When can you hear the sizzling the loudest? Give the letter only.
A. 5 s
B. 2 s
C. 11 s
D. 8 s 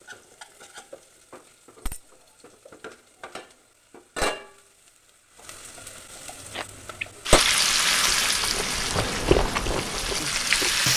D.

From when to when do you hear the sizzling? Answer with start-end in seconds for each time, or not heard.
0.0-10.9.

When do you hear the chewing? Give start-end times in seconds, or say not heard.
6.4-10.9.